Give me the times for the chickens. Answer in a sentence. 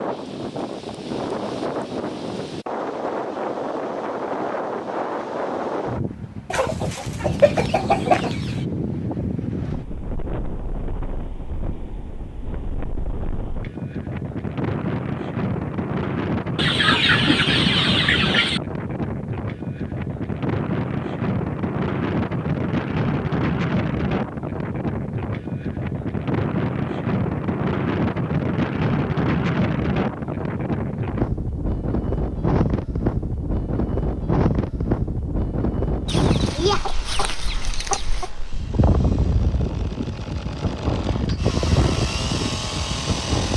The chickens can be heard from 6.5 to 8.7 s, from 16.6 to 18.6 s and from 36.0 to 38.3 s.